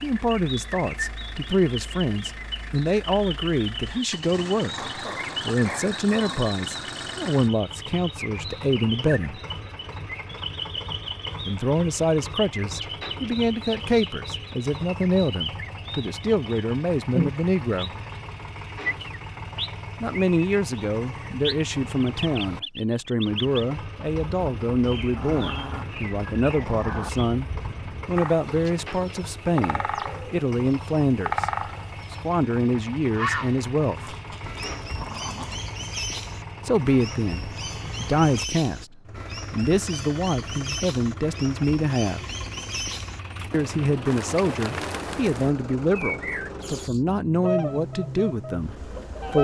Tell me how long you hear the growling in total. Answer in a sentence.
You can hear the growling for 5 seconds altogether.